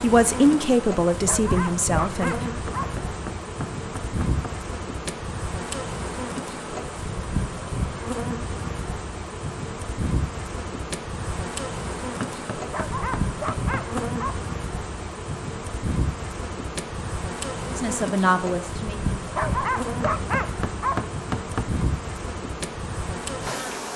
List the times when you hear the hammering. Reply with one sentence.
The hammering can be heard from 2.6 to 4.5 s, from 12.2 to 14.1 s and from 20.0 to 21.9 s.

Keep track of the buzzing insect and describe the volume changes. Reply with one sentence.
The loudness of the buzzing insect stays about the same.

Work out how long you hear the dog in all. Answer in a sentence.
You can hear the dog for 5 seconds altogether.